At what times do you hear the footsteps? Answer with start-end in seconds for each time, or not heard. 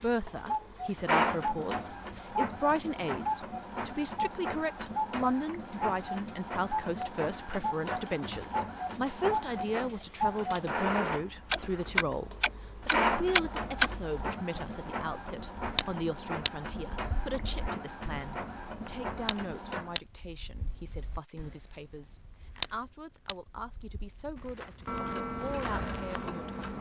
24.4-26.7.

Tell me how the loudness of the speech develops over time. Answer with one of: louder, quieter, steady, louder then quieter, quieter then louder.
quieter.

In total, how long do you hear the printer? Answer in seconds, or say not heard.
20 s.